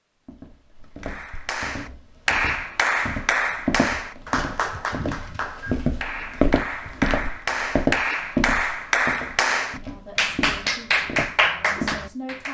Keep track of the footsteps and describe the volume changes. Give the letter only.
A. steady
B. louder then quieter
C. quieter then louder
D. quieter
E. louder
B.